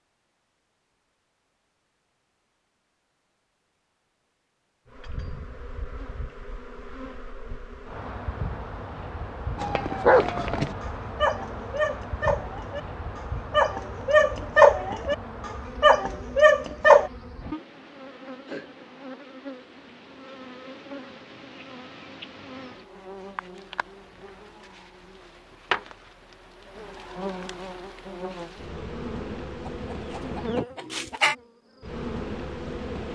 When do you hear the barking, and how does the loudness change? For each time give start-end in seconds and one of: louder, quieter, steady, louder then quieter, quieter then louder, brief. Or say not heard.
9.6-17.1 quieter then louder.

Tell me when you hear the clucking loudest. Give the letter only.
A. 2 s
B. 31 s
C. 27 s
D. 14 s
B.